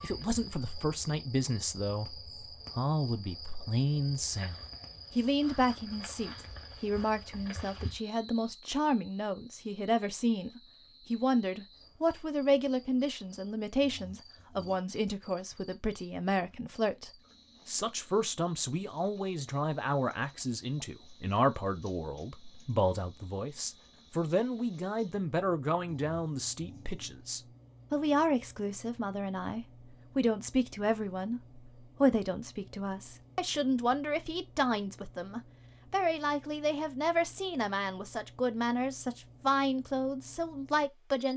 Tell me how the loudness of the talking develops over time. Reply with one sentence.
The loudness of the talking stays about the same.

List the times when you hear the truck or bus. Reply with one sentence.
The truck or bus can't be heard in this clip.